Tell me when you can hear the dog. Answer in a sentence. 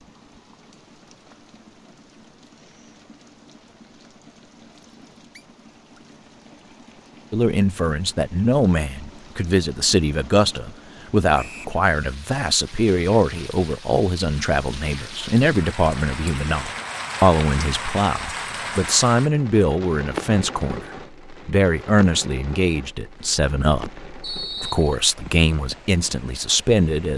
You can't hear the dog here.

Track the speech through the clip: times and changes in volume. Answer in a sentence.
You can hear the speech from 7.3 to 27.1 s, at a steady volume.